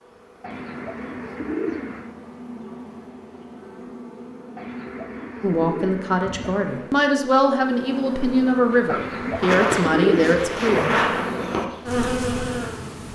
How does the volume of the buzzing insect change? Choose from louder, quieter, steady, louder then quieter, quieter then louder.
louder.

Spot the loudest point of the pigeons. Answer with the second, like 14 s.
10 s.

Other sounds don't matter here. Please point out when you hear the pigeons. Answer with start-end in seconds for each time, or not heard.
0.4-2.1, 4.5-7.0, 8.8-10.8.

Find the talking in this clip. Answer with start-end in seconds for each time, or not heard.
5.4-11.0.